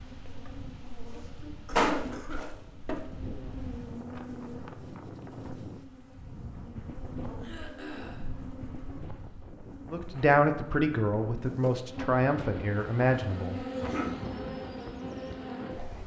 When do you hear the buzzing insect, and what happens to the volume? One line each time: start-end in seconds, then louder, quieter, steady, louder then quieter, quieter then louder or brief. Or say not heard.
0.0-16.0 quieter then louder.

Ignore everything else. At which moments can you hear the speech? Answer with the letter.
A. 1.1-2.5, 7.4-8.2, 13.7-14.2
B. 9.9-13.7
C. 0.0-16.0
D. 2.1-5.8
B.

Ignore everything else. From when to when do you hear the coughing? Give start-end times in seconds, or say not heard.
1.1-2.5, 7.4-8.2, 13.7-14.2.